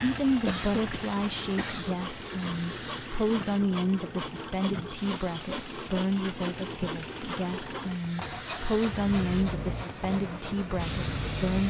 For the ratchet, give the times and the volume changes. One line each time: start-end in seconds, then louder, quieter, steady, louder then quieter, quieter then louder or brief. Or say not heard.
not heard.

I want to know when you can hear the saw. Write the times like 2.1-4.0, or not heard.
0.7-10.4.